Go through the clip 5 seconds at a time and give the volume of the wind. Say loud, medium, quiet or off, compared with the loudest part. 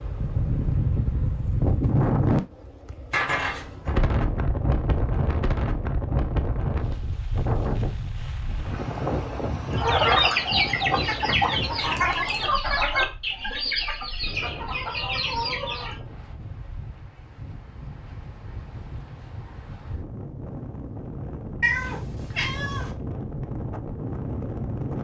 loud, loud, medium, quiet, medium.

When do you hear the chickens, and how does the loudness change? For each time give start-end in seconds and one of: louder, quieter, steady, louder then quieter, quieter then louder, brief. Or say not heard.
9.7-16.0 quieter.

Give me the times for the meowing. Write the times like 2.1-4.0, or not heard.
3.1-4.0, 11.8-12.5, 21.6-22.9.